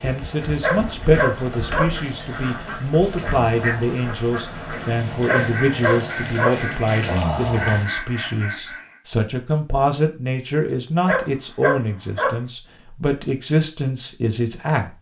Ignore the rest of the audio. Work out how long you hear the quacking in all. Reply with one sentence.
You can hear the quacking for 9 seconds altogether.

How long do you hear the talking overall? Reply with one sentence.
You can hear the talking for 15 seconds altogether.